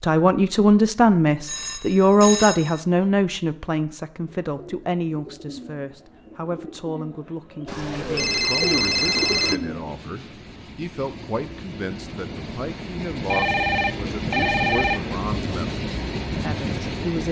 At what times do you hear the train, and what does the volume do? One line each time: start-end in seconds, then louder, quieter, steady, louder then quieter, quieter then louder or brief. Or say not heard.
9.5-17.2 louder.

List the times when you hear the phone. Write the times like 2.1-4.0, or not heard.
1.4-2.8, 7.7-9.6, 13.3-15.0.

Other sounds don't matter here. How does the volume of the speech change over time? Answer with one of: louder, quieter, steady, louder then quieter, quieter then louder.
quieter.